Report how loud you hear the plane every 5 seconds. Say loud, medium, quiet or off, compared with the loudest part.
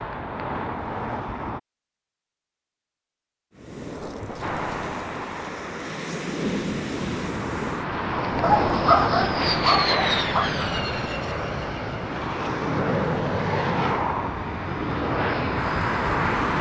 medium, loud, loud, loud.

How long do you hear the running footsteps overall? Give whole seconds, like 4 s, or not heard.
not heard.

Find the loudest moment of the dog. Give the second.
9 s.